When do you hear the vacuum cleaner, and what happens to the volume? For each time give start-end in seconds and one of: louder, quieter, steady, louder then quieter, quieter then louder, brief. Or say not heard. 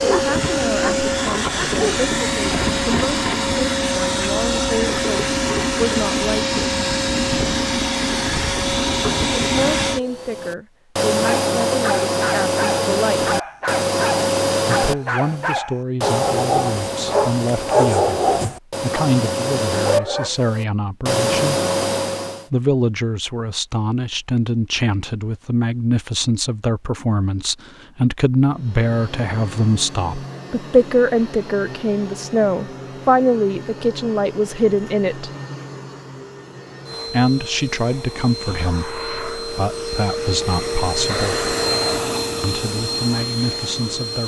0.0-22.4 steady
28.4-44.2 louder.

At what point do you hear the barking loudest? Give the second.
18 s.